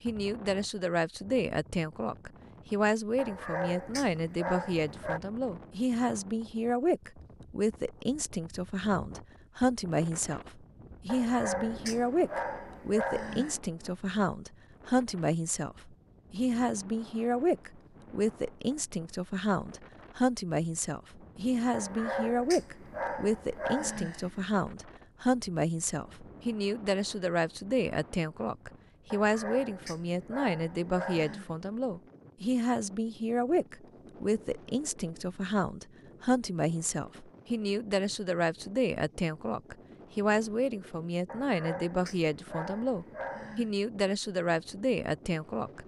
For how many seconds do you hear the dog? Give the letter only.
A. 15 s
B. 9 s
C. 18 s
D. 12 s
D.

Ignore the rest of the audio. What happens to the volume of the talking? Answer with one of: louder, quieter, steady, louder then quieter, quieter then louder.
steady.